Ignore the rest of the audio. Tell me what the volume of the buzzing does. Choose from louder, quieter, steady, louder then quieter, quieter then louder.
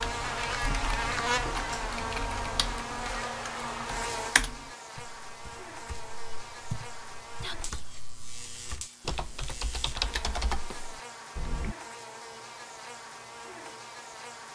quieter.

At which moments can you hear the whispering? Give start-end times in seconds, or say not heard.
7.4-7.8.